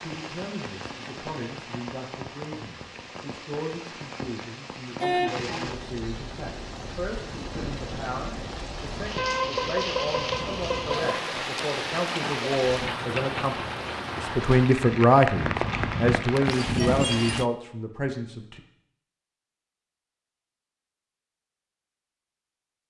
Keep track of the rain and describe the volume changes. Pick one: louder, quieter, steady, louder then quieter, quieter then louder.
louder.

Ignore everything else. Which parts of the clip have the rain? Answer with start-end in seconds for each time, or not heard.
0.0-17.4.